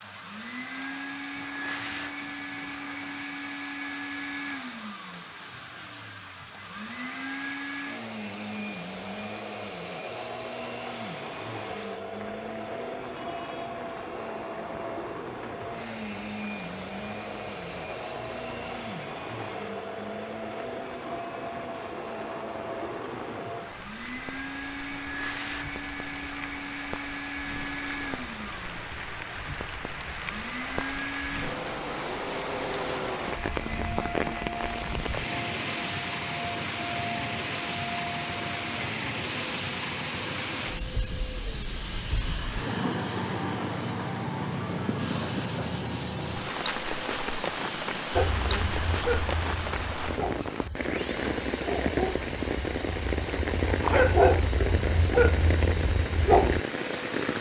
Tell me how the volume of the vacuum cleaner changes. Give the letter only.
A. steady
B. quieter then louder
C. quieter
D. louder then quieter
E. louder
A.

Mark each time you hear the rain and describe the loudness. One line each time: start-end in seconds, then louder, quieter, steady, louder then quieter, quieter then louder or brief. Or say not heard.
0.0-57.3 louder.